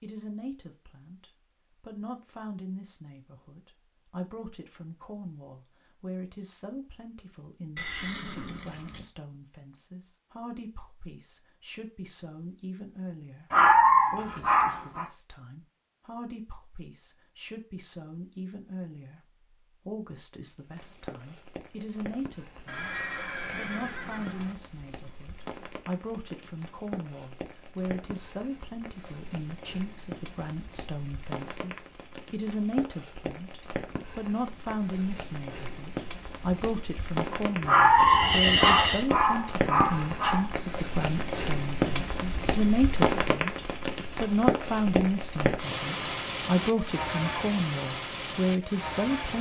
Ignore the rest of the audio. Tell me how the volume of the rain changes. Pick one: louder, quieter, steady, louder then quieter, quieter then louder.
louder.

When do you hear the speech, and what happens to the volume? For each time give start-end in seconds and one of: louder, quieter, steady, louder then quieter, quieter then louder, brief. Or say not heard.
0.0-49.3 louder.